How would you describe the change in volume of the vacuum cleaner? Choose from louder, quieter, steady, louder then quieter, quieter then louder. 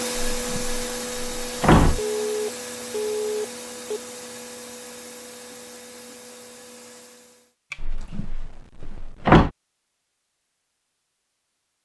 quieter.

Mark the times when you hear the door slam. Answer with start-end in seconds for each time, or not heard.
0.1-2.0, 7.8-9.5.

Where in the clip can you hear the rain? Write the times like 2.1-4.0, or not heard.
not heard.